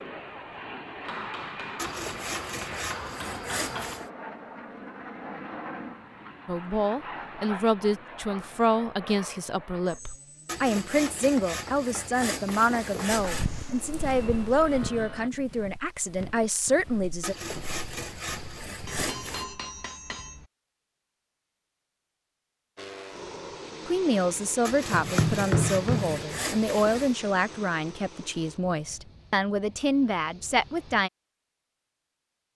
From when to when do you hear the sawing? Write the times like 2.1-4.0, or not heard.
1.8-4.1, 10.4-13.5, 17.2-19.4, 24.6-27.1.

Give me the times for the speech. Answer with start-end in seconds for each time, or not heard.
6.5-17.4, 23.9-31.1.